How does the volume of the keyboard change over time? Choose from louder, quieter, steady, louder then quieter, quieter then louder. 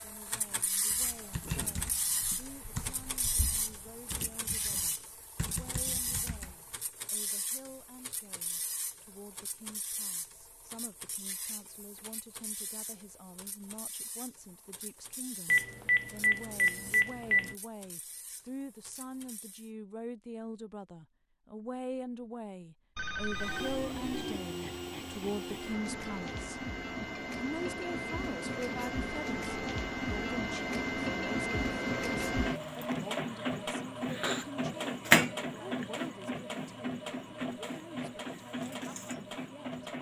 quieter then louder.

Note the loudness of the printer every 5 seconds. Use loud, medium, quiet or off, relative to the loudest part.
medium, quiet, quiet, quiet, medium, medium, loud, loud.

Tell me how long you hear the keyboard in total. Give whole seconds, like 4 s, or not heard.
6 s.